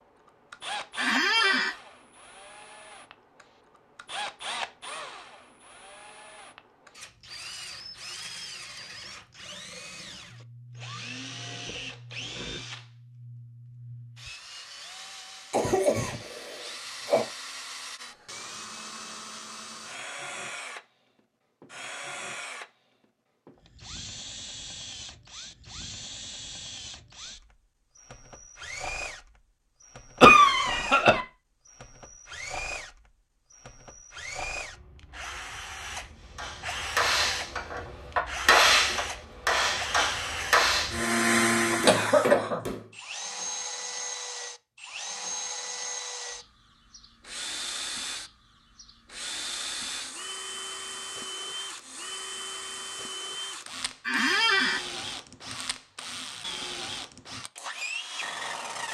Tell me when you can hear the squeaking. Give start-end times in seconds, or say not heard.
0.9-1.8, 54.0-54.9.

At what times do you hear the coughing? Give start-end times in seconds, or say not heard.
15.5-17.2, 30.2-31.2, 41.9-42.6.